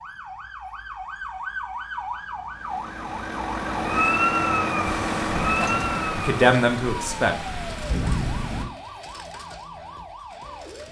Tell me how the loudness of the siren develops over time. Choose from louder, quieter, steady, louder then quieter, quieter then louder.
louder then quieter.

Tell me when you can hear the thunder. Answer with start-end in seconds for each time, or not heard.
4.8-8.7.